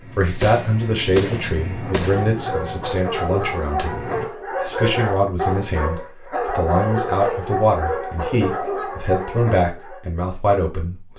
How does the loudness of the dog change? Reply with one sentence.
The loudness of the dog stays about the same.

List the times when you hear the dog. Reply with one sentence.
You can hear the dog from 1.6 to 10.1 s.